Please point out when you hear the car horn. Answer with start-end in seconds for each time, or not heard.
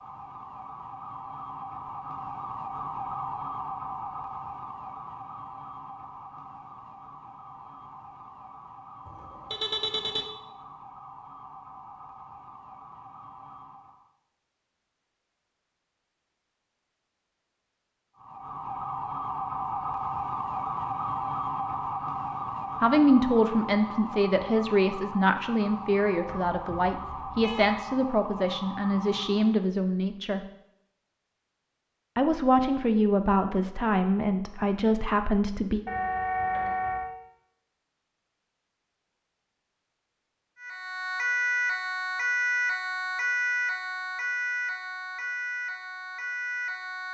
9.1-10.3, 26.2-27.8, 35.9-37.1.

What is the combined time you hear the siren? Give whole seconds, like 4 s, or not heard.
32 s.